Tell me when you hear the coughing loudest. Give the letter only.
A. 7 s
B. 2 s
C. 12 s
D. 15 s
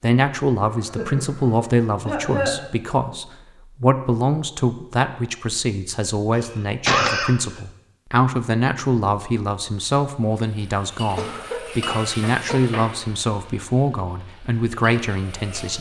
A.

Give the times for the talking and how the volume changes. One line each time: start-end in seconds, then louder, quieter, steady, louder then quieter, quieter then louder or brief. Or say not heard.
0.0-15.7 steady.